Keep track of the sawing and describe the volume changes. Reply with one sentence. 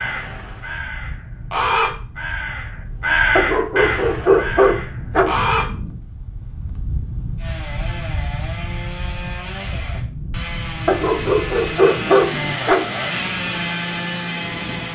The volume of the sawing goes up.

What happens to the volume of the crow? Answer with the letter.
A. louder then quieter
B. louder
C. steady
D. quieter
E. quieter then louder
A.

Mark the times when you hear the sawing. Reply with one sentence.
The sawing can be heard from 7.3 to 14.9 s.